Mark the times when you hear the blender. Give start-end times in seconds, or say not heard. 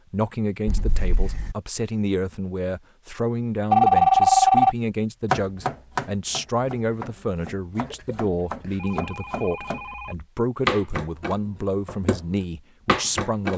not heard.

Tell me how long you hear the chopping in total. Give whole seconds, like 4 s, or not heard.
8 s.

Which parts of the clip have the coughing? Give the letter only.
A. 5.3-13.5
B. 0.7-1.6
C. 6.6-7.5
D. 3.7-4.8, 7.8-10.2
B.